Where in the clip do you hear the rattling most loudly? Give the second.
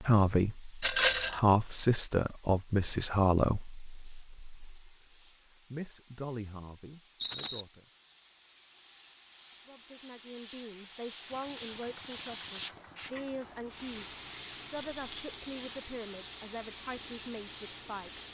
1 s.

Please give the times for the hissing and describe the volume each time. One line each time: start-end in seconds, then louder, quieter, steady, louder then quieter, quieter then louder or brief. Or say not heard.
0.0-18.3 louder.